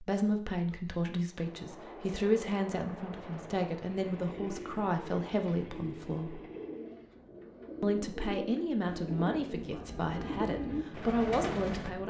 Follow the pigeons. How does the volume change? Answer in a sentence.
The loudness of the pigeons goes up.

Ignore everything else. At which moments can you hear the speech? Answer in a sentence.
You can hear the speech from 0.0 to 6.4 s and from 7.8 to 12.0 s.